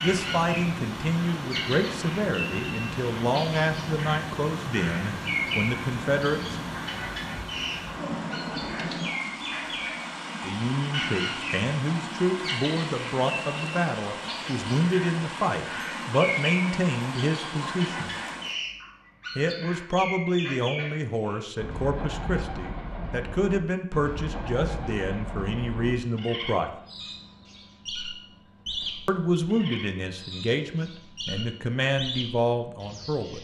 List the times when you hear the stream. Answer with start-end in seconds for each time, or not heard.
0.0-18.6.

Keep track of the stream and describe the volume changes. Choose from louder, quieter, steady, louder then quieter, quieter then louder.
steady.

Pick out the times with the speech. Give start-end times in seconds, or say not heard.
0.0-6.7, 10.4-18.1, 19.4-26.7, 29.1-33.3.